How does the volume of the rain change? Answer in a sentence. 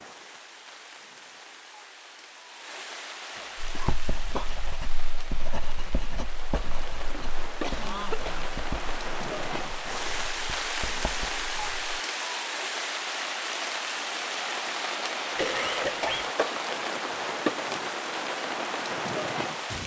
The volume of the rain goes up.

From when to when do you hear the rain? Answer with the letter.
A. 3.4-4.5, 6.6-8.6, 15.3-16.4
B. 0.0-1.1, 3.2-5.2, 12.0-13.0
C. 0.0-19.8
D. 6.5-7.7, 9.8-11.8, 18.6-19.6
C.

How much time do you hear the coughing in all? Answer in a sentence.
The coughing can be heard for 4 seconds in total.